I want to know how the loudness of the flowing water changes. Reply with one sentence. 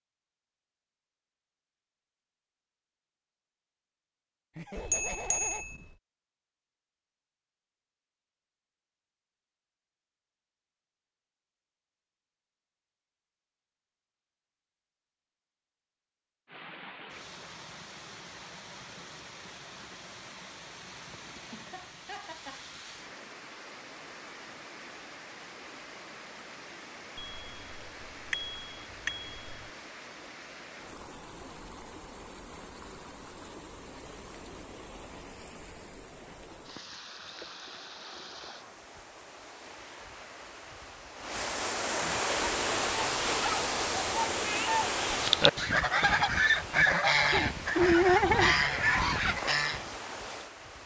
The loudness of the flowing water goes up.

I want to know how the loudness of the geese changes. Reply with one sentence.
The volume of the geese goes up.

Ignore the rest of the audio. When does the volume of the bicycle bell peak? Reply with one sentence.
The volume of the bicycle bell peaks at 5 seconds.